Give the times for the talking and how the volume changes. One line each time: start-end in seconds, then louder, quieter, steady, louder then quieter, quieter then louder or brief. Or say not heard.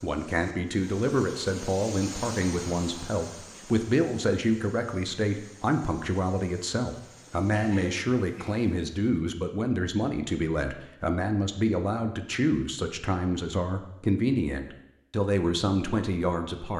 0.0-16.7 steady.